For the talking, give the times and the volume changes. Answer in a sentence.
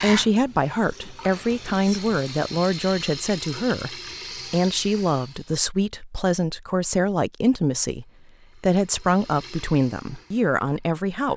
The talking can be heard from 0.0 to 11.3 s, at a steady volume.